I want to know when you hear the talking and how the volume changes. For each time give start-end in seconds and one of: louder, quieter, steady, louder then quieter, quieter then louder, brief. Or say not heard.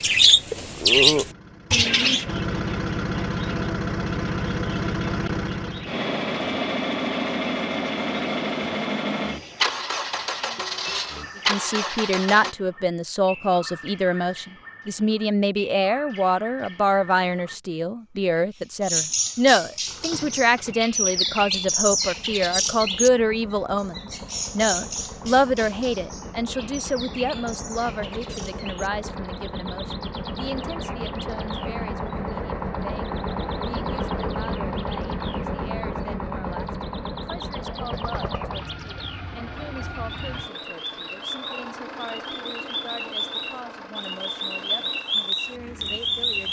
11.4-46.4 quieter.